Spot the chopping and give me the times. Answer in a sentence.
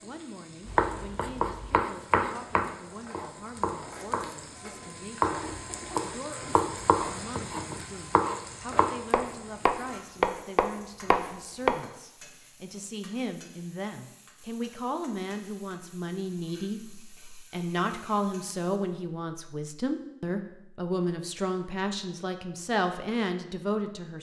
You can hear the chopping from 0.7 to 11.8 s.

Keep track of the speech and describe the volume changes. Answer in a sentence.
The volume of the speech goes up.